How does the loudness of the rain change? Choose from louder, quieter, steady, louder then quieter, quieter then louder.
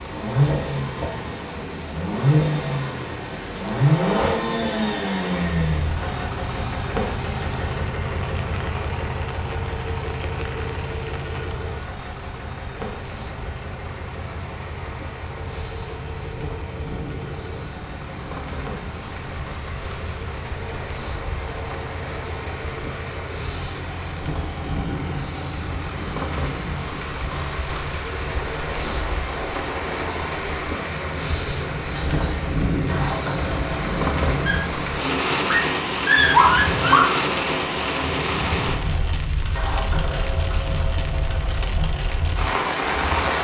louder.